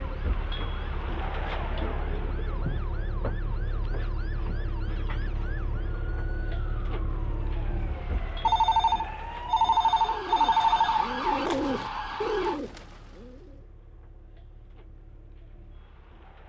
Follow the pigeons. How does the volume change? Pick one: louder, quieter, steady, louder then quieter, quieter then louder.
louder then quieter.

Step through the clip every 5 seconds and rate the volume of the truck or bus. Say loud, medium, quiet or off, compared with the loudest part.
loud, loud, quiet, quiet.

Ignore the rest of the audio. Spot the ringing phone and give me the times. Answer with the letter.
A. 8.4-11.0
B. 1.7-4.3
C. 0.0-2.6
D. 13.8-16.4
A.